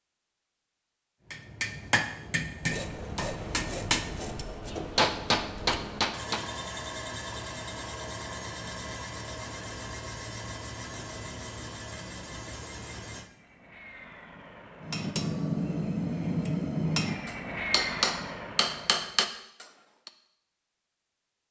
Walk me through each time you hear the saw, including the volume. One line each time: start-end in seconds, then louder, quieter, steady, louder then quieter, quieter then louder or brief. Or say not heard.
2.6-13.3 steady.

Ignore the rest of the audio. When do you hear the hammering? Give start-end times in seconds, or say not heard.
1.3-6.5, 14.8-20.1.